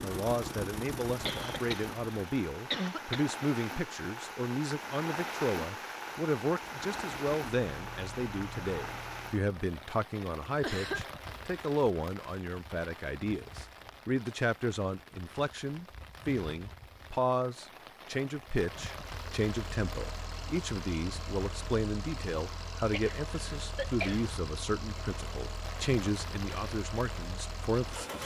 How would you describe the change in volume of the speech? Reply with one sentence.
The loudness of the speech stays about the same.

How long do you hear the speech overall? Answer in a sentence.
You can hear the speech for 28 seconds altogether.